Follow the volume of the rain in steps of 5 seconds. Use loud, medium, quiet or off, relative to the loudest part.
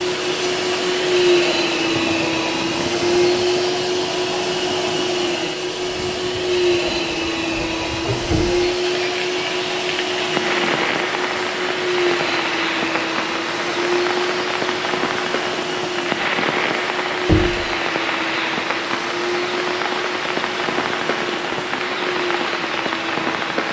medium, medium, loud, loud, loud.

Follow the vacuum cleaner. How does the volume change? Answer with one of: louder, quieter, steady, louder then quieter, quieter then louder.
quieter.